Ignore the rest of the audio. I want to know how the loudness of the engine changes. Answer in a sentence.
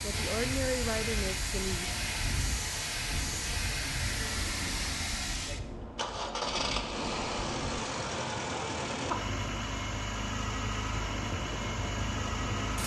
The volume of the engine stays about the same.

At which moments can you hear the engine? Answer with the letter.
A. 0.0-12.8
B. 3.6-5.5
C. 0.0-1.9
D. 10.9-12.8
A.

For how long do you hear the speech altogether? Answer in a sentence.
You can hear the speech for 2 seconds altogether.